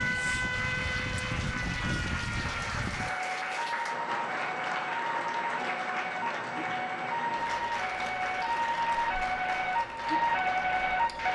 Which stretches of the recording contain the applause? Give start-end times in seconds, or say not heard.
0.0-11.3.